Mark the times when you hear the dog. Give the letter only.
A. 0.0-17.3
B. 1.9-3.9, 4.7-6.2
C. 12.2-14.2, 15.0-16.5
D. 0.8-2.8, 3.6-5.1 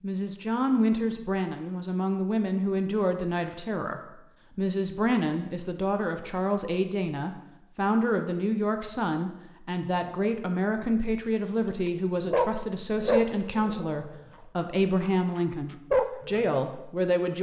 C.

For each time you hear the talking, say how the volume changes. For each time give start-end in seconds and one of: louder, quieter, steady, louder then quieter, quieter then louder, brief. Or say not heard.
0.0-17.3 steady.